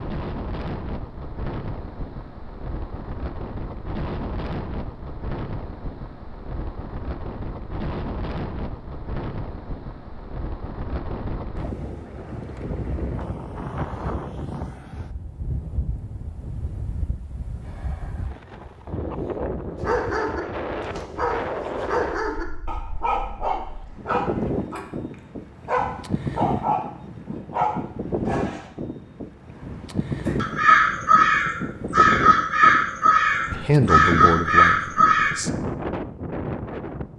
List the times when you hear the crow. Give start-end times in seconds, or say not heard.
30.2-35.3.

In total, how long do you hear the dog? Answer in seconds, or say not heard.
9 s.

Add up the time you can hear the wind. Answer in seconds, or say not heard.
37 s.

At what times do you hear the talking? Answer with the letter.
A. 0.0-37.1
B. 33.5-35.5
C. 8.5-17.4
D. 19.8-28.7
B.